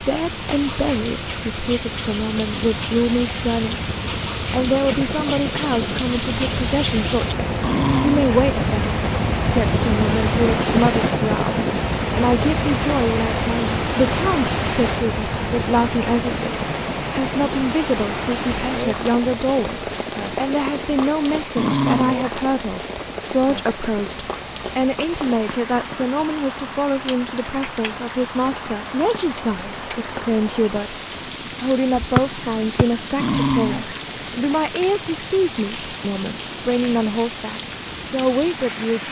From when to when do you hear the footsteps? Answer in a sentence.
The footsteps can't be heard in this clip.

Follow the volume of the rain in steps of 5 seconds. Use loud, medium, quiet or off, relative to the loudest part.
medium, loud, loud, loud, medium, medium, medium, medium.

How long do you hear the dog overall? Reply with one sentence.
You can hear the dog for 2 seconds altogether.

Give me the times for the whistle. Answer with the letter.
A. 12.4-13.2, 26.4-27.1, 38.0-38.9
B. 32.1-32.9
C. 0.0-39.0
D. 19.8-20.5
B.